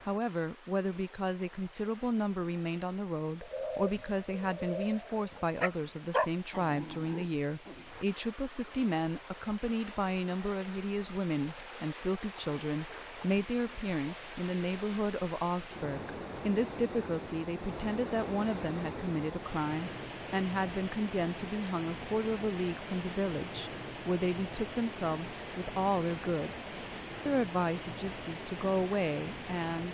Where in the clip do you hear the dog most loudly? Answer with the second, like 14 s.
6 s.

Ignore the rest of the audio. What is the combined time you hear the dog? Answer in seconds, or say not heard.
2 s.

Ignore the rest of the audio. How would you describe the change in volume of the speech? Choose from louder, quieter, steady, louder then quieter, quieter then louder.
steady.